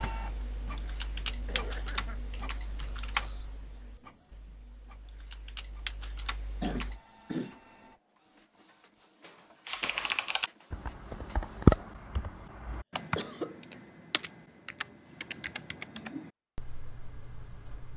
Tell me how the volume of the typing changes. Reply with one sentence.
The loudness of the typing goes up, then down.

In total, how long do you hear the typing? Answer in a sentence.
The typing can be heard for 15 seconds in total.